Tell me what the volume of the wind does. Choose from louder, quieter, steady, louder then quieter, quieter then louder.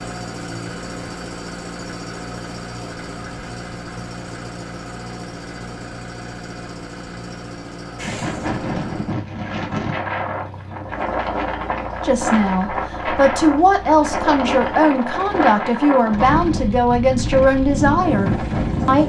steady.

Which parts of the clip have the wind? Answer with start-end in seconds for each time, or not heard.
8.0-19.0.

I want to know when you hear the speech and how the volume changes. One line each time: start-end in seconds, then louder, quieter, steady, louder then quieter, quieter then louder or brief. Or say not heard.
12.0-19.0 steady.